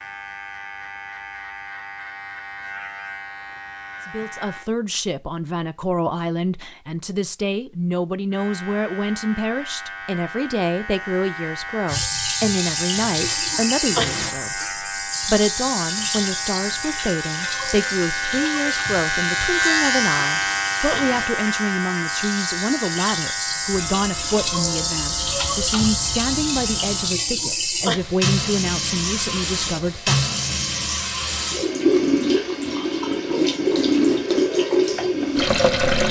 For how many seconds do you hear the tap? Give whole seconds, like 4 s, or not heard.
24 s.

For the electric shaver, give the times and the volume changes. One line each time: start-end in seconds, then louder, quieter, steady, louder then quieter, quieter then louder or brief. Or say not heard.
0.0-4.7 steady
8.3-27.1 louder then quieter.